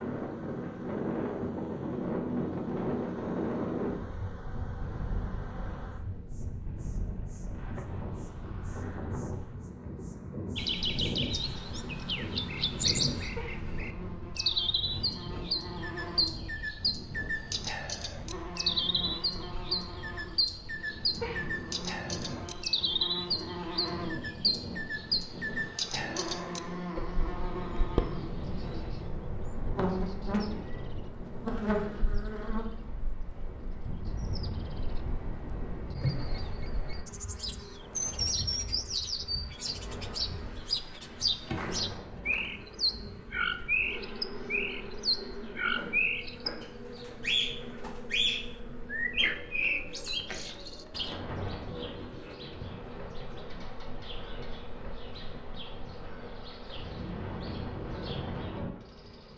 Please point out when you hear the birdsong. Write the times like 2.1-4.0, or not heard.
10.6-59.3.